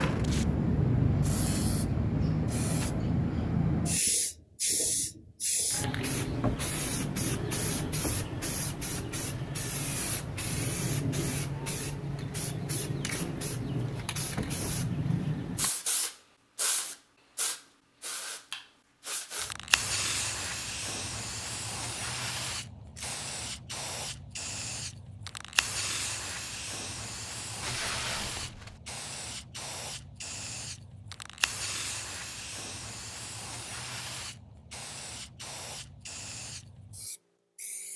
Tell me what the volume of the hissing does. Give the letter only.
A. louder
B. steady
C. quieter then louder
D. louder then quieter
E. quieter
E.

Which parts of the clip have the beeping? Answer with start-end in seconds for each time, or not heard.
not heard.